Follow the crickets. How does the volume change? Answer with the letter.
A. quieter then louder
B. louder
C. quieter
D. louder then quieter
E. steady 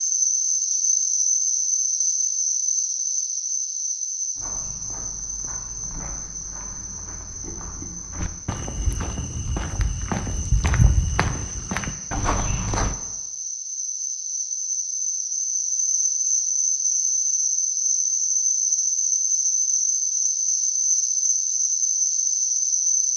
A.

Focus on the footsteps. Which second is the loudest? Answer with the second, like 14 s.
11 s.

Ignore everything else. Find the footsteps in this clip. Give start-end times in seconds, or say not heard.
4.3-12.9.